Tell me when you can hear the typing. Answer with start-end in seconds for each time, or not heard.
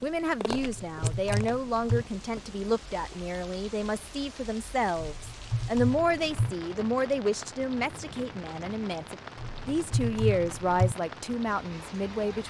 0.5-2.0, 5.0-6.5, 9.3-10.9.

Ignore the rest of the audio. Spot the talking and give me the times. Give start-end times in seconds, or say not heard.
0.0-12.4.